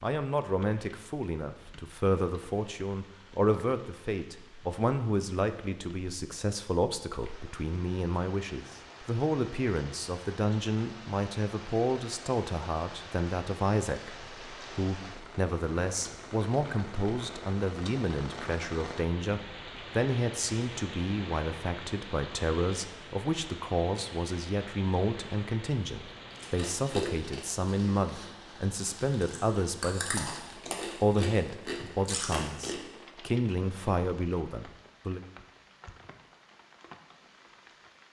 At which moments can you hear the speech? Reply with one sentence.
The speech can be heard from 0.0 to 30.4 s and from 31.0 to 35.2 s.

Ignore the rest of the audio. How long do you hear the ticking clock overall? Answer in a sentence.
The ticking clock can't be heard in this clip.